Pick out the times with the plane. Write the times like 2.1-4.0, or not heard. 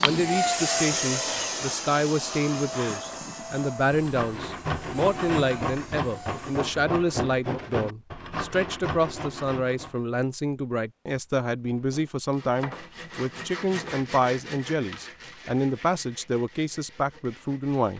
0.0-6.8.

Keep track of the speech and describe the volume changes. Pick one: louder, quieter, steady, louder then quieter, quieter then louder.
steady.